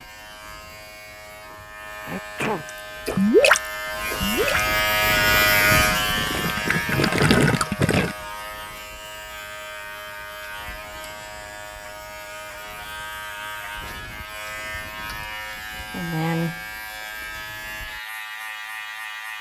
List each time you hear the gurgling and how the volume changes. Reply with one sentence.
You can hear the gurgling from 3.0 to 8.2 s, getting quieter then louder.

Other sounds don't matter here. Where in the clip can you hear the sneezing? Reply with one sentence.
The sneezing can be heard from 2.0 to 2.6 s.